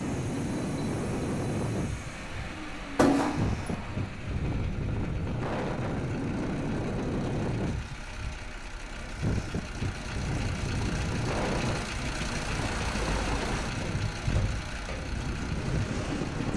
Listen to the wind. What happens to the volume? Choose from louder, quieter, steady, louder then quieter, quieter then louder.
steady.